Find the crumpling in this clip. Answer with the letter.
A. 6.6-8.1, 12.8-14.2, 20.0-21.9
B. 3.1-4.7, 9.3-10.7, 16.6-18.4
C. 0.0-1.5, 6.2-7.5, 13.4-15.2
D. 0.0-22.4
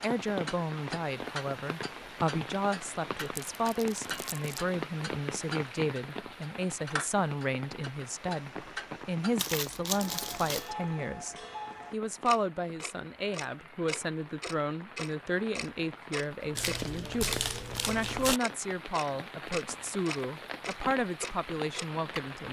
B.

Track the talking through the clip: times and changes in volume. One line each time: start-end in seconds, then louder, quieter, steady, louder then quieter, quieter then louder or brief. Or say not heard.
0.0-22.4 steady.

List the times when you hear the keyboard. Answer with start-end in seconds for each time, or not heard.
not heard.